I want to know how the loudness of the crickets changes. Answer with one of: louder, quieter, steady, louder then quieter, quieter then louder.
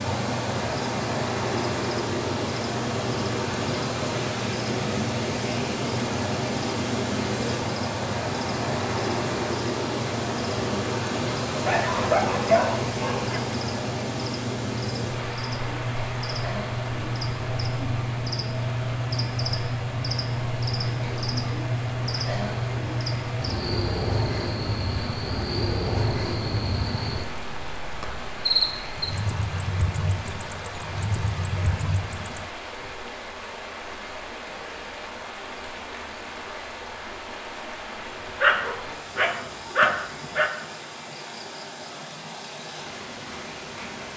louder.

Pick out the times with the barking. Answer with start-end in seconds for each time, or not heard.
11.7-13.4, 38.4-40.5.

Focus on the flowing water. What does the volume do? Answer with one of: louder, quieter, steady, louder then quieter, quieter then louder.
quieter.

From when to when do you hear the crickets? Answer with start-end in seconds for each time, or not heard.
0.0-32.5.